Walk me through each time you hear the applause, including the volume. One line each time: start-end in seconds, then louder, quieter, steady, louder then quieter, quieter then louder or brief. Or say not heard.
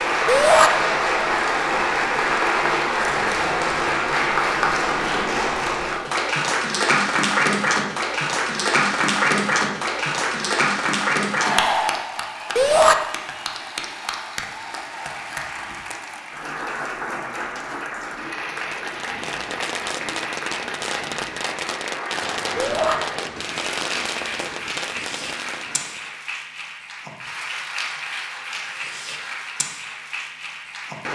0.0-31.1 quieter.